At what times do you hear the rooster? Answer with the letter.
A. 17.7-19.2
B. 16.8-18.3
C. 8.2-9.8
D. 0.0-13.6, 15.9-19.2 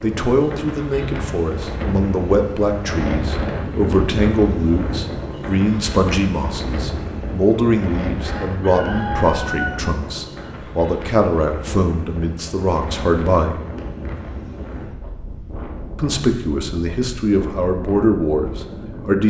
C.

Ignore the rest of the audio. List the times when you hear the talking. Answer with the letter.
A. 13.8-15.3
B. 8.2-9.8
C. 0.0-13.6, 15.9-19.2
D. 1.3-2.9
C.